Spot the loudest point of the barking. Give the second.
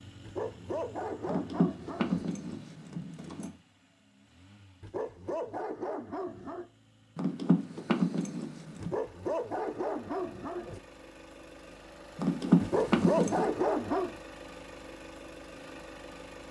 13 s.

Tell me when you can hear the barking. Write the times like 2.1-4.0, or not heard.
0.2-2.2, 4.8-6.7, 8.8-10.8, 12.6-14.2.